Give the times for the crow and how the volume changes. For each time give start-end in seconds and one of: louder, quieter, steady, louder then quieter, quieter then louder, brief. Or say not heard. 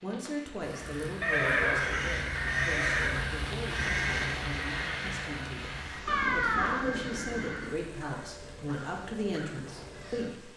0.6-10.3 quieter.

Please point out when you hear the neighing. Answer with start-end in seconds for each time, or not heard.
1.2-3.2, 6.0-7.7.